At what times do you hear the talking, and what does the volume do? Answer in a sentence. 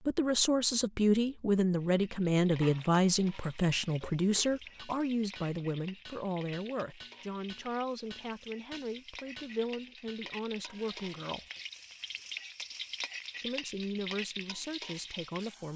The talking can be heard from 0.1 to 11.4 s, getting quieter; and briefly from 13.4 to 15.7 s.